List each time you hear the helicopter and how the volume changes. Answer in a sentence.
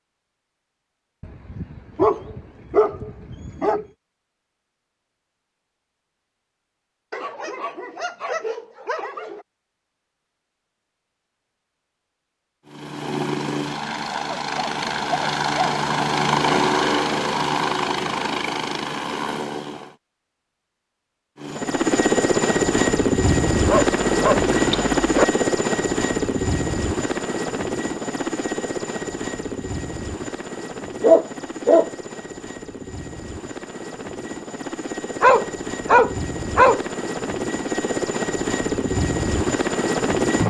The helicopter can be heard from 12.7 to 19.9 s, getting louder then quieter; and from 21.4 to 40.4 s, getting quieter then louder.